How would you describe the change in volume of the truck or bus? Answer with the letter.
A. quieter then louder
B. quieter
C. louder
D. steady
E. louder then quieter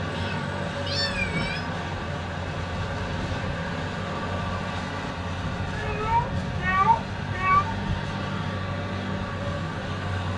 D.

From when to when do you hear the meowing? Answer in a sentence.
The meowing can be heard from 0.1 to 1.7 s and from 5.8 to 7.7 s.